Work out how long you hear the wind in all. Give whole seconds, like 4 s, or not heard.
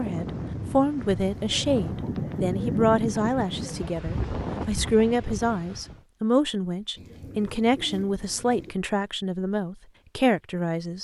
6 s.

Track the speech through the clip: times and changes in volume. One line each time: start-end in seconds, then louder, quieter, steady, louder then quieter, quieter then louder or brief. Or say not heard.
0.0-10.9 steady.